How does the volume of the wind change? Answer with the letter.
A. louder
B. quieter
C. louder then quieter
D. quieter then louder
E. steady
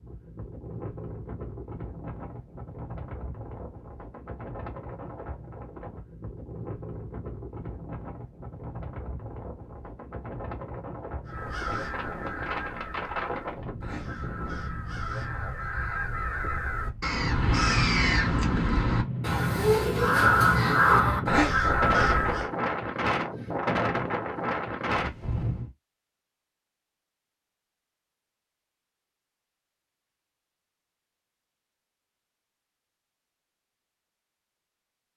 A.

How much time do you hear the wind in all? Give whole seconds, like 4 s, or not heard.
26 s.